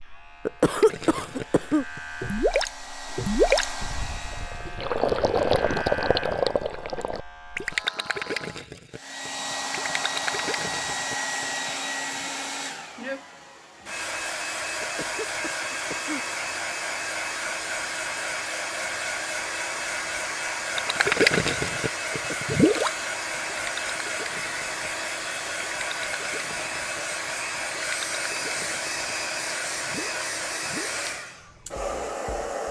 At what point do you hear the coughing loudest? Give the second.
1 s.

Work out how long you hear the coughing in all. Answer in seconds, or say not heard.
4 s.